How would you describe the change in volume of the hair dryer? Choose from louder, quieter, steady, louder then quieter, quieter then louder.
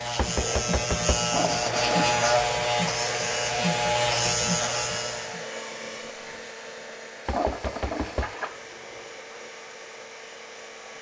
quieter.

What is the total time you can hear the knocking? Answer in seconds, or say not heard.
2 s.